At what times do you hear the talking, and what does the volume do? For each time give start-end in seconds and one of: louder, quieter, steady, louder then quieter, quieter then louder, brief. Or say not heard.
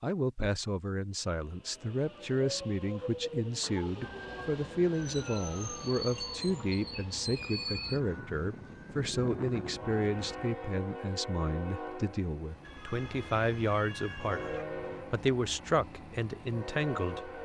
0.0-17.4 steady.